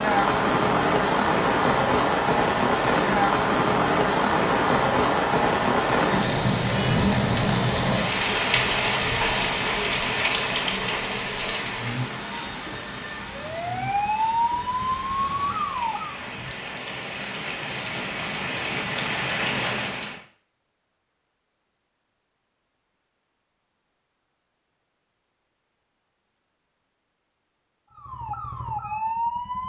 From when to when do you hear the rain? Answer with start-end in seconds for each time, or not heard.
0.0-20.2.